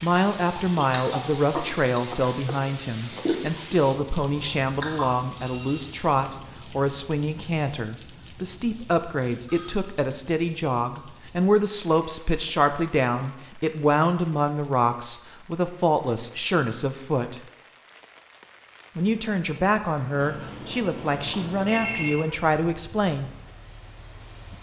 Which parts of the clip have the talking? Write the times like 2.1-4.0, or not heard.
0.0-17.4, 18.9-23.3.